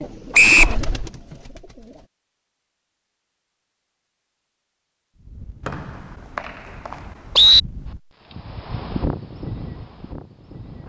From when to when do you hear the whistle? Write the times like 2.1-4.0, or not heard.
0.3-0.8, 5.7-7.6.